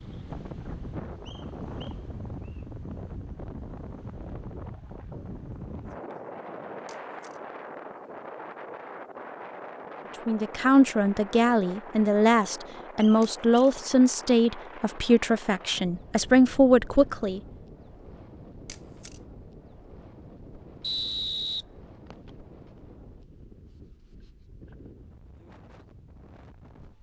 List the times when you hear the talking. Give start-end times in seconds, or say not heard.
10.2-17.4.